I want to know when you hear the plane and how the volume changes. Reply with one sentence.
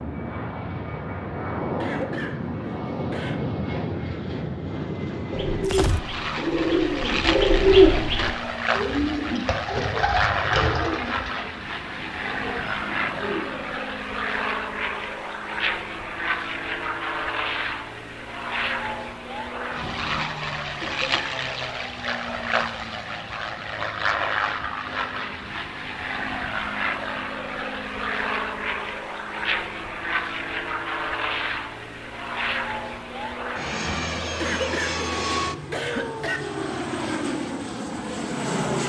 You can hear the plane from 0.0 to 38.8 s, at a steady volume.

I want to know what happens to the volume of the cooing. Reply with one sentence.
The loudness of the cooing goes up, then down.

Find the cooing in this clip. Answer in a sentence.
The cooing can be heard from 5.3 to 13.8 s.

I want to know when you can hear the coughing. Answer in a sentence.
The coughing can be heard from 1.8 to 3.4 s, from 20.8 to 21.4 s and from 34.4 to 36.4 s.